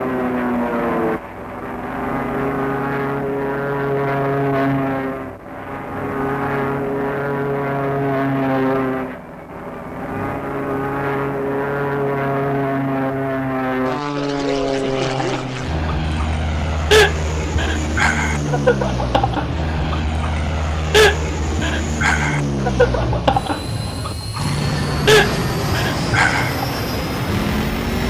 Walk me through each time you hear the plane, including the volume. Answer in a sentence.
The plane can be heard from 0.0 to 28.0 s, at a steady volume.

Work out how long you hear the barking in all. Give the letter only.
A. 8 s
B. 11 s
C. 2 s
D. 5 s
B.